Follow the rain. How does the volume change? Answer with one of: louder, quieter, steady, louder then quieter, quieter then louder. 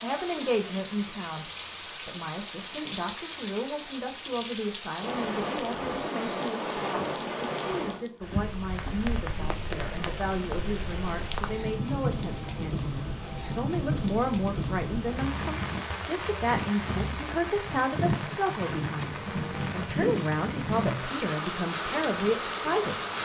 steady.